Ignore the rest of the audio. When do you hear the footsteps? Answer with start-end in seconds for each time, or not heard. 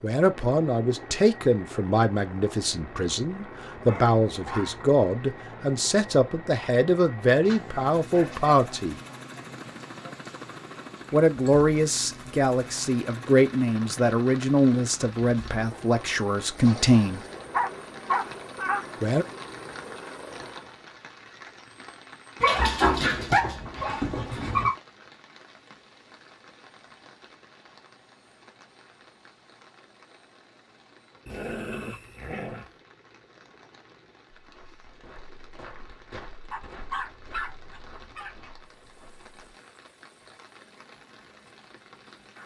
34.4-39.5.